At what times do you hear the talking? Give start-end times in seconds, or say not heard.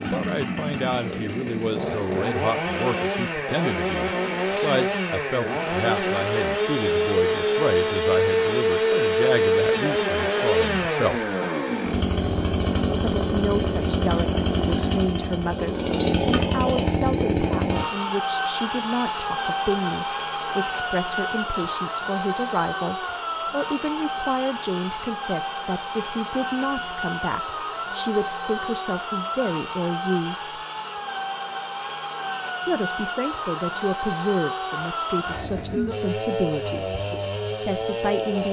0.0-11.3, 12.9-30.6, 32.6-36.9, 37.6-38.4.